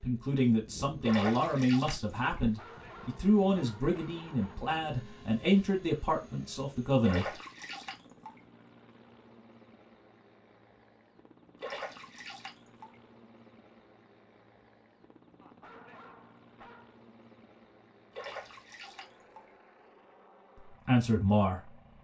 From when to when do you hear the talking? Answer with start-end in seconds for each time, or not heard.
0.0-7.3, 20.6-21.8.